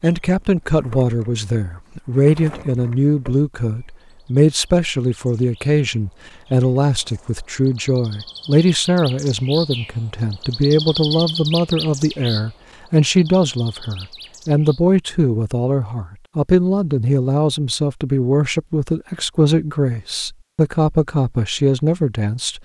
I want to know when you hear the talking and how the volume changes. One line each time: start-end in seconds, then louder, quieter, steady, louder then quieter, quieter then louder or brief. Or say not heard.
0.0-22.6 steady.